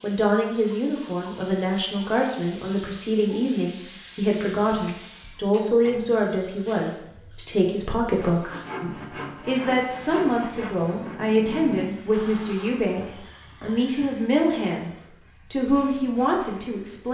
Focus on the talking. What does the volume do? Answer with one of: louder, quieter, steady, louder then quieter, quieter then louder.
steady.